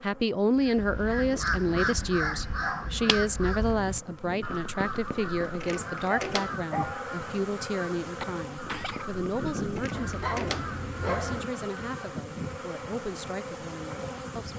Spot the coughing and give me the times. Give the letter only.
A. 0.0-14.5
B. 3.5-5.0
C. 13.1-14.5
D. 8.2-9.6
D.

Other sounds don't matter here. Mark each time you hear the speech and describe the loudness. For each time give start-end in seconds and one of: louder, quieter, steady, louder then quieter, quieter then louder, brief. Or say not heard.
0.0-14.5 quieter.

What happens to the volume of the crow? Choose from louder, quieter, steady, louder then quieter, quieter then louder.
quieter.